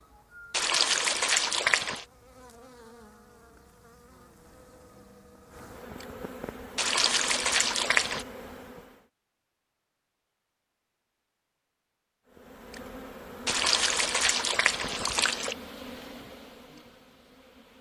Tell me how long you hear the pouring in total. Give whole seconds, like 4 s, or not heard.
5 s.